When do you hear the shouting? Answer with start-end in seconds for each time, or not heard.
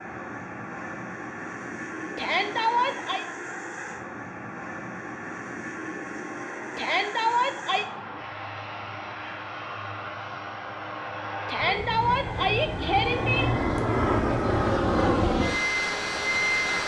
2.1-3.2, 6.8-7.8, 11.4-13.4.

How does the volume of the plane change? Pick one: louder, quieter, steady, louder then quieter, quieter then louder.
louder.